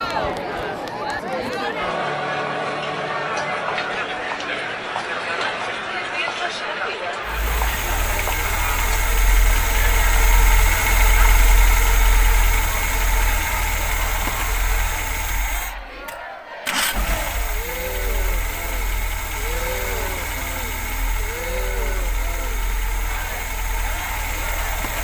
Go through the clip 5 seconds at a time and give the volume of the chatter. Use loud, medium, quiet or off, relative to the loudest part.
loud, loud, medium, medium, medium.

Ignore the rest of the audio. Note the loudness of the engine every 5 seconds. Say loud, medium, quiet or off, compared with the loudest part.
off, loud, loud, medium, medium.